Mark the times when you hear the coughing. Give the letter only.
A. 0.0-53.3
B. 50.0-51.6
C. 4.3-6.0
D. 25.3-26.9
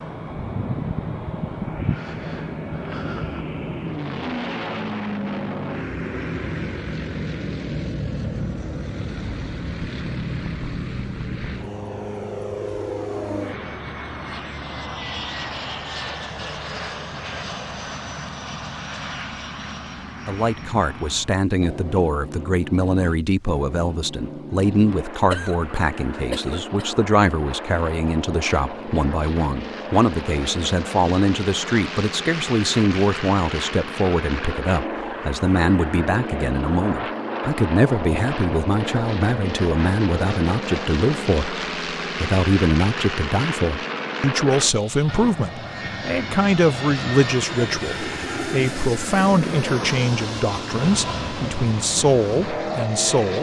D.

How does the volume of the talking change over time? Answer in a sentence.
The volume of the talking stays about the same.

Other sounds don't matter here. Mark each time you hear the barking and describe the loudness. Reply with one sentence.
You can't hear the barking here.